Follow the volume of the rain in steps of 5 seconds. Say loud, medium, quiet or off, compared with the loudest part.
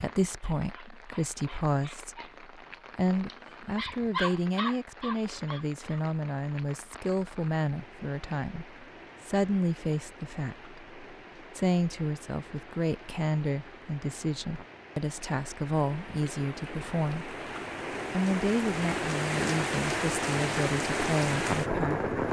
quiet, quiet, quiet, medium, loud.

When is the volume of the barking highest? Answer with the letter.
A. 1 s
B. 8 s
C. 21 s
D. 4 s
D.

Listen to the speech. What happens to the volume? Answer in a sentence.
The volume of the speech stays about the same.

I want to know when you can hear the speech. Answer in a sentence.
You can hear the speech from 0.0 to 17.4 s and from 18.1 to 22.1 s.